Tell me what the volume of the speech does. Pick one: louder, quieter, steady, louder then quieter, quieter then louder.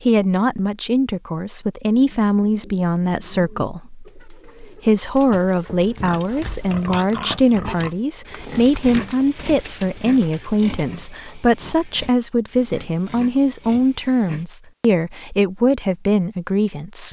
steady.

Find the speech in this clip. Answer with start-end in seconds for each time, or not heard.
0.0-17.0.